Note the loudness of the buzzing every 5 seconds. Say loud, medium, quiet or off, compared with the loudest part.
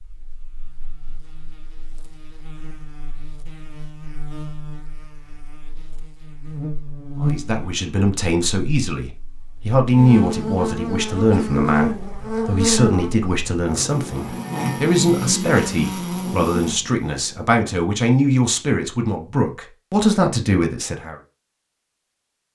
quiet, medium, loud, loud, off.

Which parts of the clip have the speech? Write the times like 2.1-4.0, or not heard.
7.2-21.1.